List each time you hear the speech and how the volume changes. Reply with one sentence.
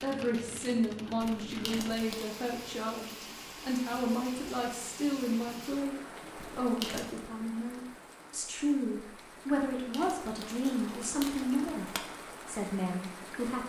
The speech can be heard from 0.0 to 13.6 s, at a steady volume.